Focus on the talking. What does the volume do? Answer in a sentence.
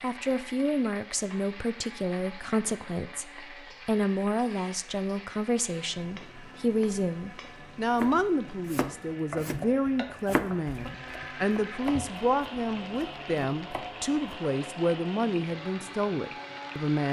The loudness of the talking stays about the same.